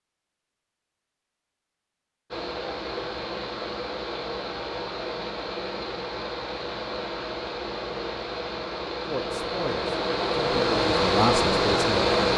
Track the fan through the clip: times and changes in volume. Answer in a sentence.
You can hear the fan from 2.3 to 12.3 s, getting louder.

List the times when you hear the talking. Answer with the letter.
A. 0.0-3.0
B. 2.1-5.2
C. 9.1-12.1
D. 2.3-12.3
C.